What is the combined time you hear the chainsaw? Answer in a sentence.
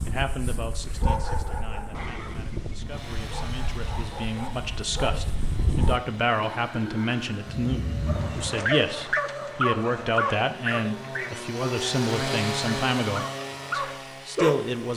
You can hear the chainsaw for 12 seconds altogether.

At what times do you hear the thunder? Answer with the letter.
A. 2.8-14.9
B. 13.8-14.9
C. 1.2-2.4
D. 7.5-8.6
D.